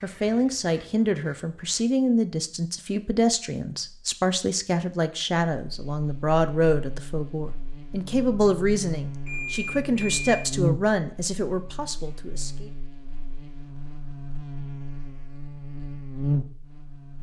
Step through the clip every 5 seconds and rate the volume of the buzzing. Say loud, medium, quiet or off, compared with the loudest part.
off, medium, loud, loud.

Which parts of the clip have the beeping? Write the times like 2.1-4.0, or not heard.
9.2-10.4.